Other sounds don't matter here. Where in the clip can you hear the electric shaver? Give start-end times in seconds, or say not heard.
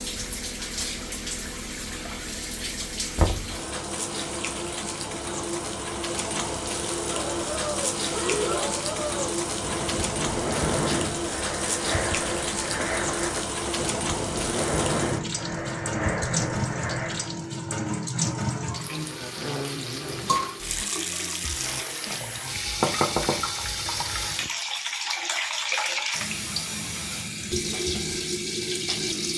not heard.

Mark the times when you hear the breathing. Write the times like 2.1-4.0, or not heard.
7.0-17.4.